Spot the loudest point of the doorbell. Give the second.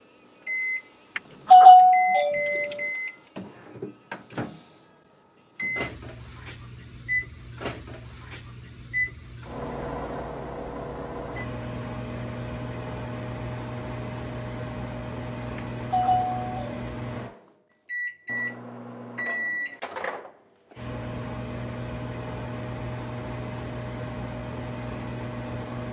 2 s.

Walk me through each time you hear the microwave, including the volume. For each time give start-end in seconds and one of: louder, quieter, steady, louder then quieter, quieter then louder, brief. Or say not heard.
0.0-25.8 steady.